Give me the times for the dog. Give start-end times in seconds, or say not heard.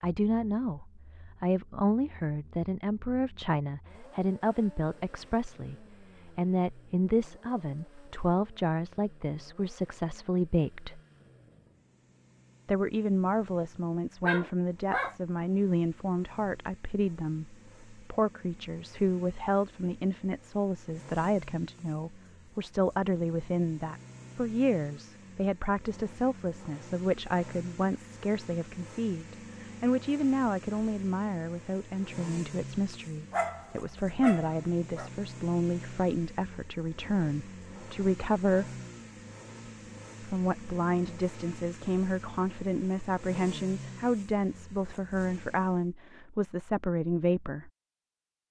14.2-15.2, 33.3-35.1.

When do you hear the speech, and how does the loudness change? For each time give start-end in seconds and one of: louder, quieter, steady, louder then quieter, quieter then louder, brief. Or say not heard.
0.0-11.0 steady
12.7-38.7 steady
40.2-47.7 steady.